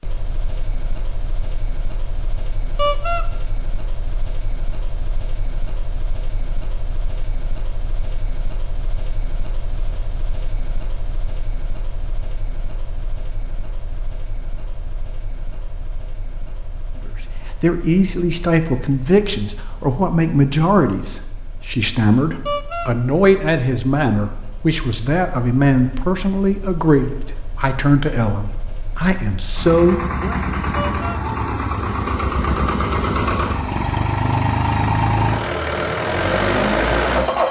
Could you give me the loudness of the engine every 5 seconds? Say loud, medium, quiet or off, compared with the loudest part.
quiet, quiet, quiet, quiet, quiet, quiet, loud, loud.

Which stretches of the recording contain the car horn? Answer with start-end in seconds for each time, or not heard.
2.8-3.2, 22.4-22.9, 30.8-31.2.